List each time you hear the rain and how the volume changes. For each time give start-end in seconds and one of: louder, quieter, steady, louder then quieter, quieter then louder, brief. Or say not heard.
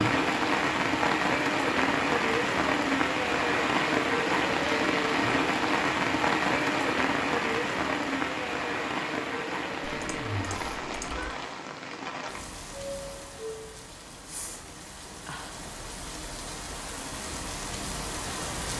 0.0-18.7 quieter.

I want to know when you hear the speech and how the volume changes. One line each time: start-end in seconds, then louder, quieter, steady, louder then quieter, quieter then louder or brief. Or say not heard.
not heard.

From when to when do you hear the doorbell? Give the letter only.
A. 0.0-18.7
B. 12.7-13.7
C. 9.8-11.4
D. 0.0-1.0
B.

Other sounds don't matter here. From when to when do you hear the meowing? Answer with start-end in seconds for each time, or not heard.
9.8-11.4.